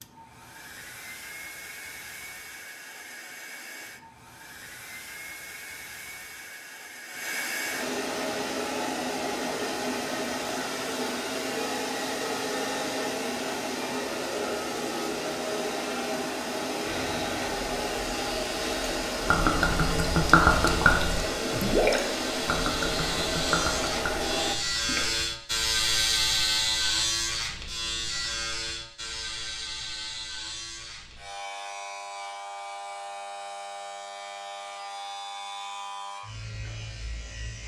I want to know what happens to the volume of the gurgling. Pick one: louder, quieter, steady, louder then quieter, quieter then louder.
quieter.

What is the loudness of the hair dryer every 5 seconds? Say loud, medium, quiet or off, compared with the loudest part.
quiet, loud, loud, loud, loud, off, off, off.